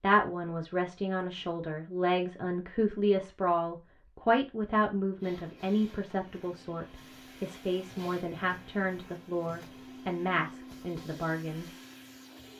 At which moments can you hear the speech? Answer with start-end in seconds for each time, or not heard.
0.0-11.7.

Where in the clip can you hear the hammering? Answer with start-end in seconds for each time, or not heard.
not heard.